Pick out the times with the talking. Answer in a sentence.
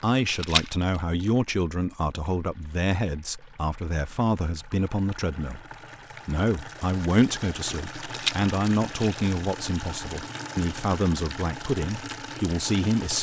You can hear the talking from 0.0 to 5.7 s and from 6.2 to 13.1 s.